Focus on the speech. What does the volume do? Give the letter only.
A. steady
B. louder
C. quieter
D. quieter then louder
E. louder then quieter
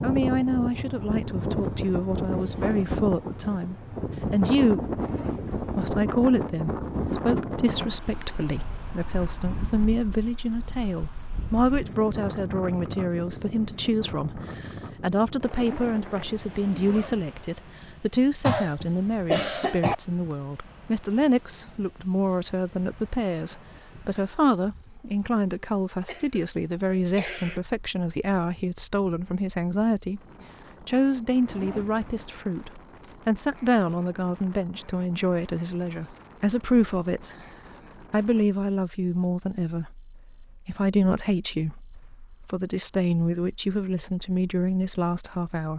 A.